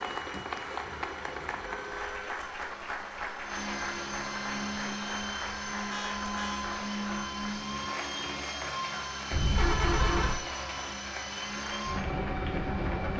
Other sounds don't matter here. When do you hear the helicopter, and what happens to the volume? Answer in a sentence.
You can hear the helicopter from 0.2 to 13.1 s, getting louder.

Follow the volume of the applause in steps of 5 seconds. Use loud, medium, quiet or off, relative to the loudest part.
loud, loud, medium.